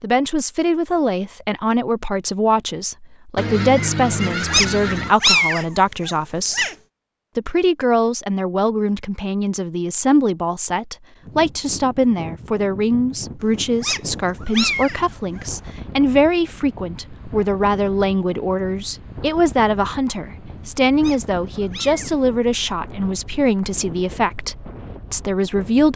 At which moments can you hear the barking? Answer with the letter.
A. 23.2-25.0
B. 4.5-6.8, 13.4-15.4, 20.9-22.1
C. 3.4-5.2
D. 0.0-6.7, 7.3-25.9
B.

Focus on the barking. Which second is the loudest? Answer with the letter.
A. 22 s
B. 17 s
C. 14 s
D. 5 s
D.